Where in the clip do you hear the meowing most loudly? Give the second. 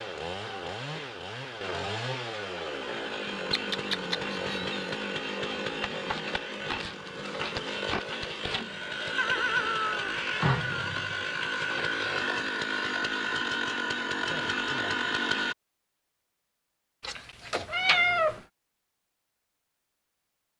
18 s.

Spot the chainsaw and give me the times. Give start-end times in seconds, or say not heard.
0.0-15.6.